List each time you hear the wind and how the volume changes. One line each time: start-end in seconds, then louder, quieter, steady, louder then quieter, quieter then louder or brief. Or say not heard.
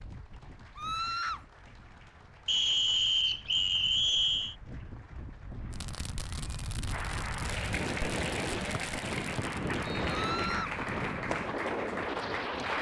0.0-12.7 louder.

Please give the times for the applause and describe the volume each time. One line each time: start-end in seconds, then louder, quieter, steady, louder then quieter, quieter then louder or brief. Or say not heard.
0.0-12.7 louder.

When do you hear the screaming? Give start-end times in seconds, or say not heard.
0.8-1.4, 10.1-10.8.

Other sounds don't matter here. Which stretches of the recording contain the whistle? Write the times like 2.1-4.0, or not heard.
2.5-4.5, 8.7-10.1.